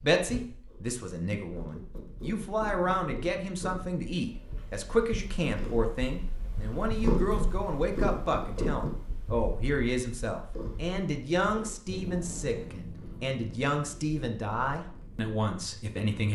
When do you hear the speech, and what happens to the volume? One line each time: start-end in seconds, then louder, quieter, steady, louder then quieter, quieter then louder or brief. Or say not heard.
0.0-16.3 steady.